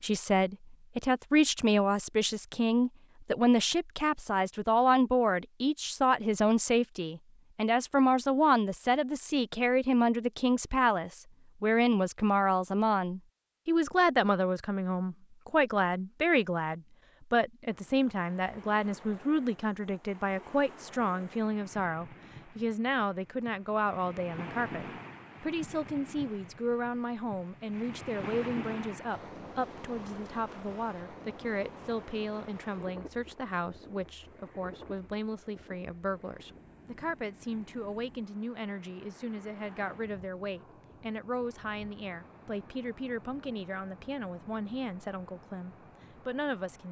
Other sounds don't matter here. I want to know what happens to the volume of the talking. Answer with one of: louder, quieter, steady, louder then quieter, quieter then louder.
quieter.